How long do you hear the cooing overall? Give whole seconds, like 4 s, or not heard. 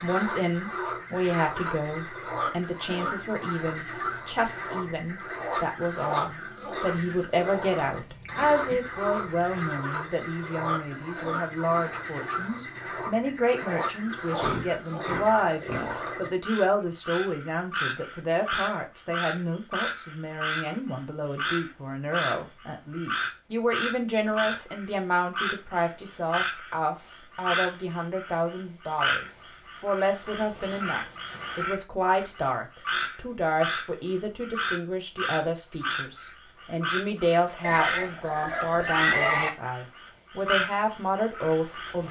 not heard.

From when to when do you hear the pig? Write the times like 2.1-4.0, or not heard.
7.8-9.8, 14.1-16.1, 37.6-39.5.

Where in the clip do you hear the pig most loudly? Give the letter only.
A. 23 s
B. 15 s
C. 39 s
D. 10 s
C.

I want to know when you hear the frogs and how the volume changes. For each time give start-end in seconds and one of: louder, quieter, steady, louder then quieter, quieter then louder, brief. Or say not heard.
0.0-42.0 steady.